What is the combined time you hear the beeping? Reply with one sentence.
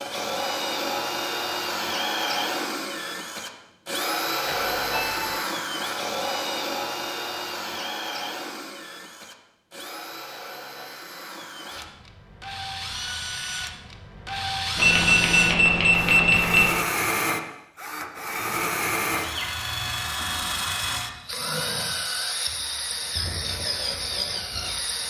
You can hear the beeping for 3 seconds altogether.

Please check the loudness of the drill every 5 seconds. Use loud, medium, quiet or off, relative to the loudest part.
loud, loud, medium, loud, loud.